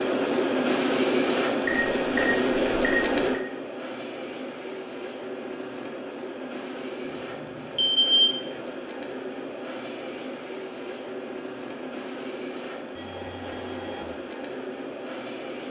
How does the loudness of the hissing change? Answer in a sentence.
The volume of the hissing goes down.